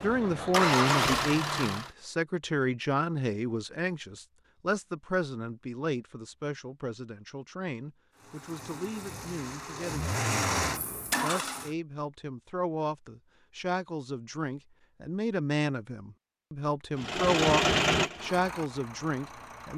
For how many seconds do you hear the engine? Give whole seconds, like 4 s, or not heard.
8 s.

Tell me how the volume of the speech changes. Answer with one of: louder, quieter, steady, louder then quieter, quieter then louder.
quieter then louder.